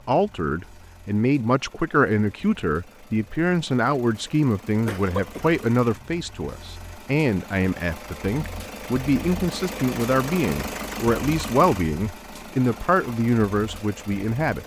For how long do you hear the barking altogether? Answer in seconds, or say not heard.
not heard.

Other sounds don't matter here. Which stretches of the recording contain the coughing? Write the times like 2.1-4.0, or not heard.
4.8-5.6.